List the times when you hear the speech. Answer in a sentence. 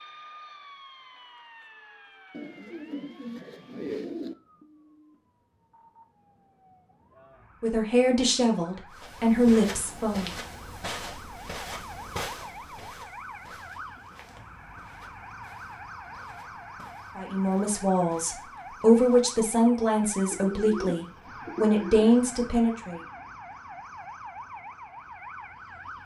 You can hear the speech from 7.6 to 10.3 s and from 17.1 to 23.0 s.